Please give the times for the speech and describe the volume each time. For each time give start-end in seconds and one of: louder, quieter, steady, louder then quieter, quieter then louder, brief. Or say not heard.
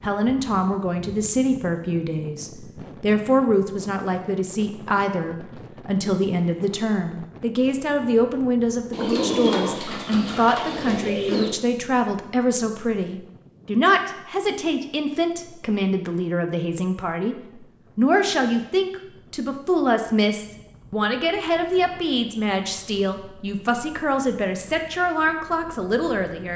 0.0-17.4 steady
17.9-26.5 steady.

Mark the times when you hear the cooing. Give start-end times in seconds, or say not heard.
8.9-11.5.